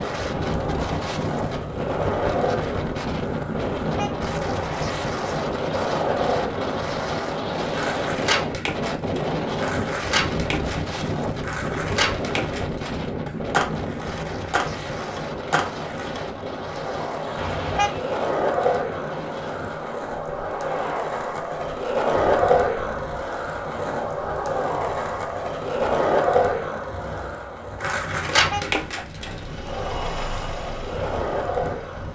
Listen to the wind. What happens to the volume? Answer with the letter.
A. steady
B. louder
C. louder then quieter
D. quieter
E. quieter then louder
D.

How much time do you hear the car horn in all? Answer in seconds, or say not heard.
2 s.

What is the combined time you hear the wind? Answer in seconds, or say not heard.
32 s.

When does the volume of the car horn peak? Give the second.
18 s.